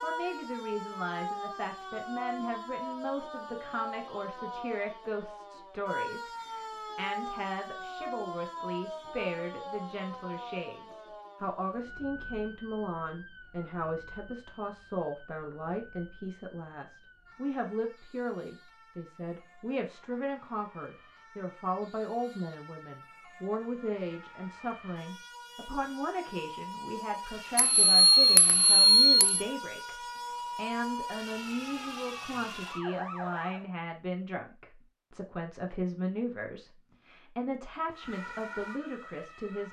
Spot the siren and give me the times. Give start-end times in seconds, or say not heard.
0.0-33.6, 37.9-39.6.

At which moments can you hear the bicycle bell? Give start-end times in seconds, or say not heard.
27.6-29.4.